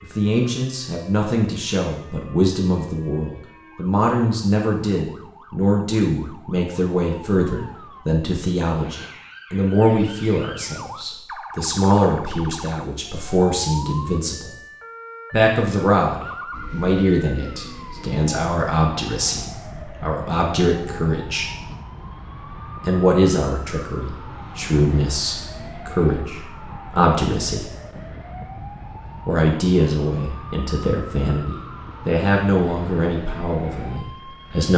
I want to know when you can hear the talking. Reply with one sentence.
You can hear the talking from 0.0 to 14.6 s, from 15.3 to 21.5 s, from 22.8 to 27.7 s and from 29.2 to 34.7 s.